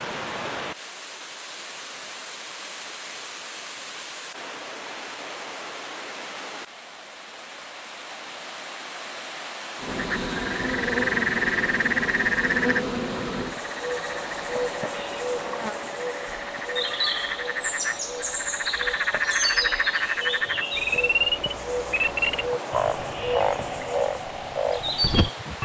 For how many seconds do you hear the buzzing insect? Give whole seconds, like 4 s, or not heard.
16 s.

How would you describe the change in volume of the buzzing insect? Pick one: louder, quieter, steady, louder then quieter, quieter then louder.
steady.